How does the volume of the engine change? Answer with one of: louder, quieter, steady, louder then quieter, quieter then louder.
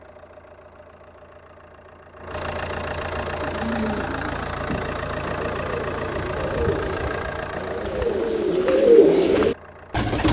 louder then quieter.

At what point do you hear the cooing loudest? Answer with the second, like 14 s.
9 s.